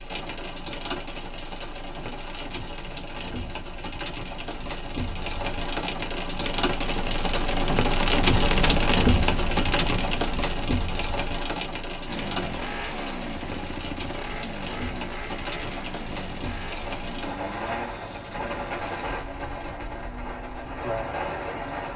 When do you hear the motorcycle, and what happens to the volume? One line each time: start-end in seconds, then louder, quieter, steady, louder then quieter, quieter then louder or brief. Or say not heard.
12.0-21.9 quieter.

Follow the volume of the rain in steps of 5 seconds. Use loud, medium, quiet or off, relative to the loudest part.
medium, loud, medium, medium, medium.